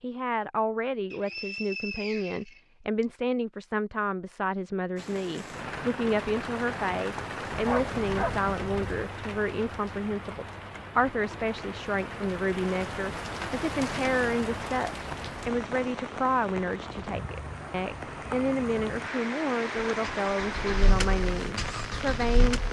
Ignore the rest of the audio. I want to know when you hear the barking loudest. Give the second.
8 s.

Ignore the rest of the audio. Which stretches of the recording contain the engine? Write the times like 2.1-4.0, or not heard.
20.0-22.6.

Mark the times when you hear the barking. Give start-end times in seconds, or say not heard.
7.5-9.1.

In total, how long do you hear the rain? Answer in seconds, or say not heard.
18 s.